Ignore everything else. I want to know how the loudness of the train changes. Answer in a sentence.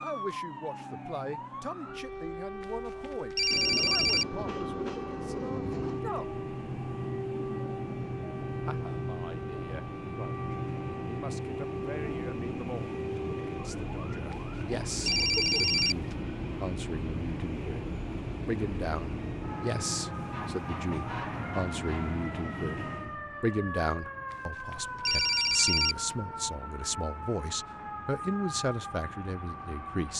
The loudness of the train goes down.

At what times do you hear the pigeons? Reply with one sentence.
The pigeons can't be heard in this clip.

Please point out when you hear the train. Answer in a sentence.
You can hear the train from 3.5 to 30.1 s.